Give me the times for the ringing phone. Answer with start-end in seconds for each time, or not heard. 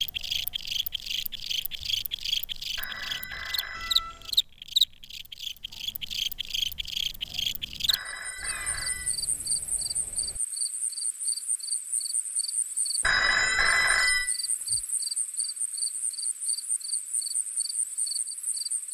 2.8-4.0, 7.8-9.2, 13.0-14.8.